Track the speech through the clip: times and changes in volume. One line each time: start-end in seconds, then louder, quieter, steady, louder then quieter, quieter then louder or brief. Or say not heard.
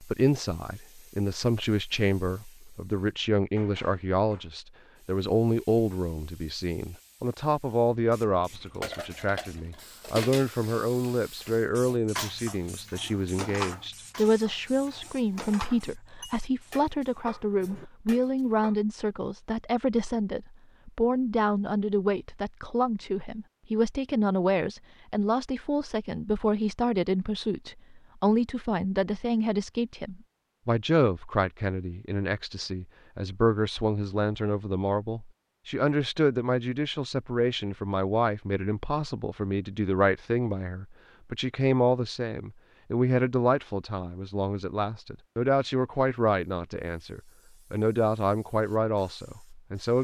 0.0-50.0 steady.